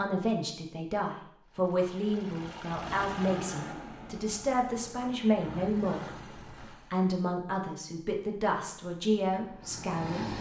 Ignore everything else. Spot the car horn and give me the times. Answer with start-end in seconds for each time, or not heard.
not heard.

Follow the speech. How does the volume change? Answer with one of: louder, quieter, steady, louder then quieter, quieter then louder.
steady.